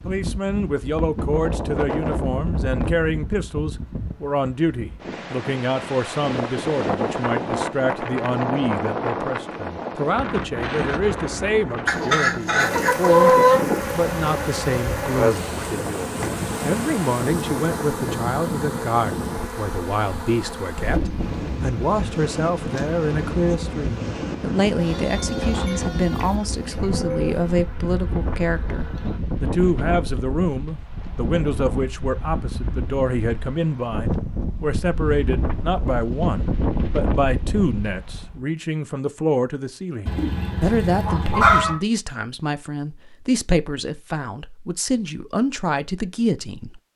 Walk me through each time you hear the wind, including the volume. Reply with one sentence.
You can hear the wind from 0.0 to 38.5 s, at a steady volume.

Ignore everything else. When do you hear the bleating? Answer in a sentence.
You can hear the bleating from 24.8 to 27.4 s.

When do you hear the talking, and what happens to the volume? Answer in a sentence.
The talking can be heard from 0.1 to 13.3 s, at a steady volume; and from 13.9 to 46.8 s, at a steady volume.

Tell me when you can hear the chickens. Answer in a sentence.
The chickens can be heard from 11.8 to 13.6 s and from 40.0 to 41.8 s.